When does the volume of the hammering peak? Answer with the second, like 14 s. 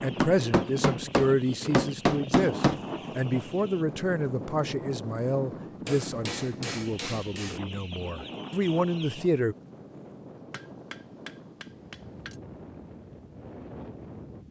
2 s.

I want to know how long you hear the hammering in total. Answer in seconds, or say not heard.
6 s.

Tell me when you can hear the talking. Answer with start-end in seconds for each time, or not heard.
0.0-9.6.